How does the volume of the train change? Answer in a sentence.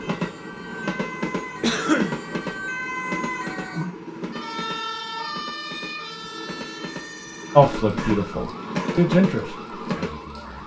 The volume of the train goes down, then up.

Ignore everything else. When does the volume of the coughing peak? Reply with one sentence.
The loudest moment of the coughing is at 2 seconds.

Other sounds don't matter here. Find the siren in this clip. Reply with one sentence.
You can hear the siren from 0.0 to 10.6 s.